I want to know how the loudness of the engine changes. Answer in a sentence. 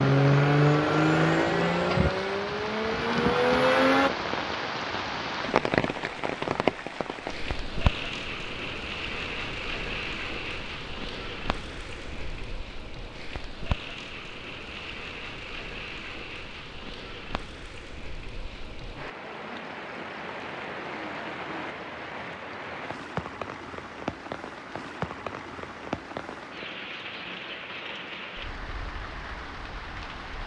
The volume of the engine goes down, then up.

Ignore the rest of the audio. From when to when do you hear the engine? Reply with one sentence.
You can hear the engine from 0.0 to 4.1 s.